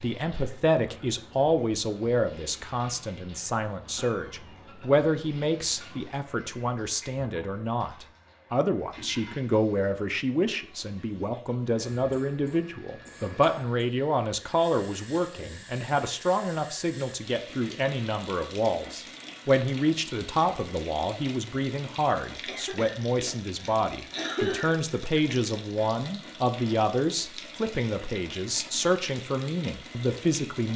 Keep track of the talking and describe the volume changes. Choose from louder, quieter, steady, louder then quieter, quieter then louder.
steady.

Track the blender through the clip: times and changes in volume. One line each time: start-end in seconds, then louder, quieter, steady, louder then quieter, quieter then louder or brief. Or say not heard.
not heard.